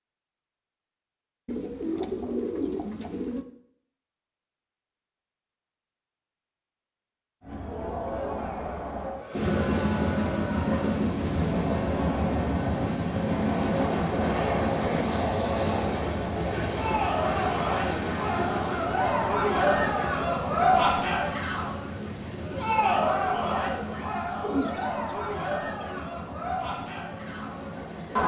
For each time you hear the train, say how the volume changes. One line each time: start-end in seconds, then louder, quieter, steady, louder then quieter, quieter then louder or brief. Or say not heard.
9.3-28.2 quieter.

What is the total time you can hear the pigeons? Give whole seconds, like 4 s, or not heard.
4 s.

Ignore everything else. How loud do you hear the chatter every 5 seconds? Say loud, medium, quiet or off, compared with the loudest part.
off, medium, medium, loud, loud, medium.